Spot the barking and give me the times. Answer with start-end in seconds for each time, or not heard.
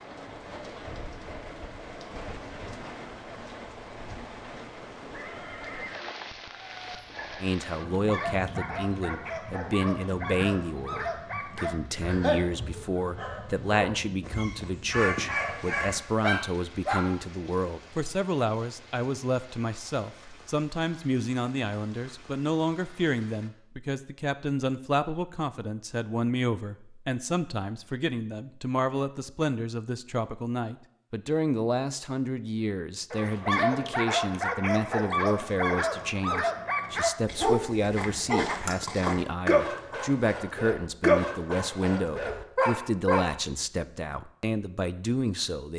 6.5-17.1, 33.1-43.4.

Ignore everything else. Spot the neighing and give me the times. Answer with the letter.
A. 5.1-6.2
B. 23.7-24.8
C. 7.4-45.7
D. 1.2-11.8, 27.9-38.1
A.